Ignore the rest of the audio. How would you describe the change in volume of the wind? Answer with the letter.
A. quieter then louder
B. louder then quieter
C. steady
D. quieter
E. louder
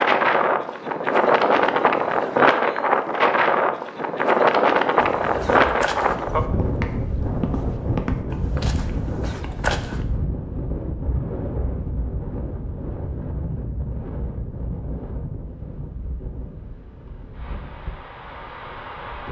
D.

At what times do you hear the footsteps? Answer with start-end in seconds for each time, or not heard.
5.0-10.1.